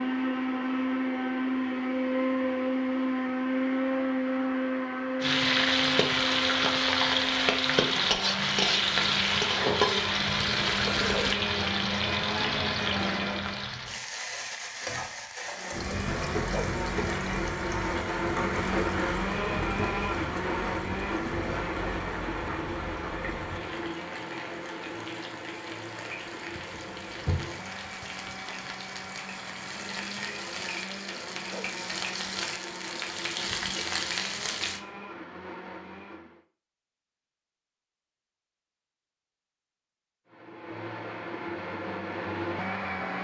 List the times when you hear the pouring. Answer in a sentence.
The pouring can be heard from 10.5 to 11.3 s.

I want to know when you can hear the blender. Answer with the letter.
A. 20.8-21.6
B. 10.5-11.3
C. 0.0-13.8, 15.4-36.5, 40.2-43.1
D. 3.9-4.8
C.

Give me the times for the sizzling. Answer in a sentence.
You can hear the sizzling from 5.2 to 34.8 s.